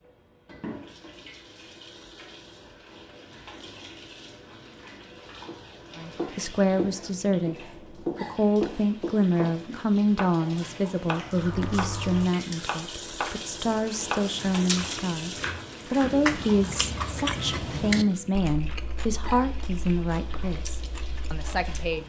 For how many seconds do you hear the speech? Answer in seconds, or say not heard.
16 s.